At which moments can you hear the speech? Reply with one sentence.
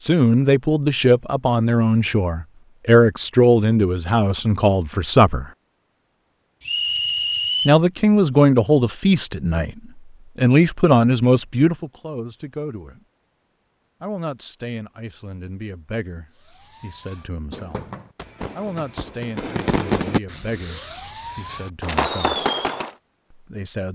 You can hear the speech from 0.0 to 5.5 s, from 7.7 to 9.8 s, from 10.3 to 13.0 s, from 14.0 to 17.8 s, from 18.6 to 22.4 s and from 23.3 to 23.9 s.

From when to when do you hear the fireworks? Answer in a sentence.
The fireworks can be heard from 16.3 to 22.9 s.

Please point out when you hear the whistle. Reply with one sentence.
The whistle can be heard from 6.6 to 7.8 s.